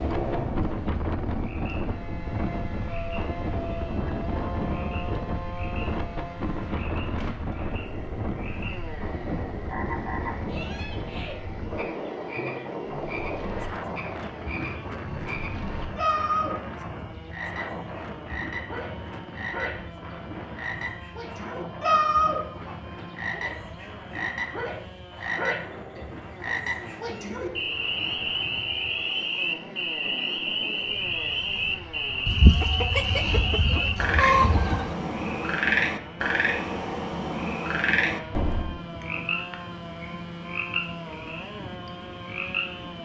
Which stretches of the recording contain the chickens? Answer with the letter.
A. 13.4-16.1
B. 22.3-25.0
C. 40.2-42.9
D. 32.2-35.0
D.